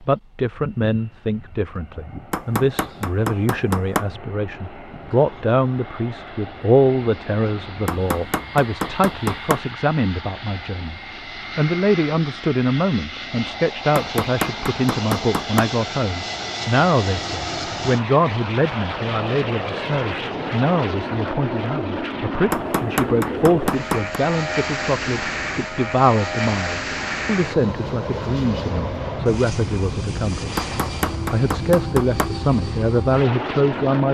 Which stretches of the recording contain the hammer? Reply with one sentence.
The hammer can be heard from 2.3 to 4.1 s, from 7.8 to 9.7 s, from 13.9 to 15.7 s, from 22.5 to 24.1 s and from 30.6 to 32.4 s.